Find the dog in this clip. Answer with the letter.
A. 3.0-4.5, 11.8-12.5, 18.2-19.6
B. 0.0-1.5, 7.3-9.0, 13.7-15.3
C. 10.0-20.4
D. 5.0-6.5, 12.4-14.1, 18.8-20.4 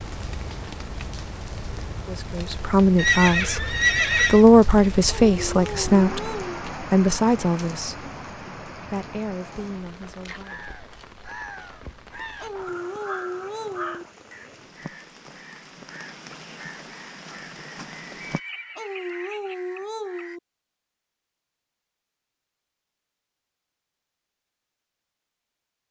D.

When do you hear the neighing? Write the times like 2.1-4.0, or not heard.
3.0-4.5, 11.8-12.5, 18.2-19.6.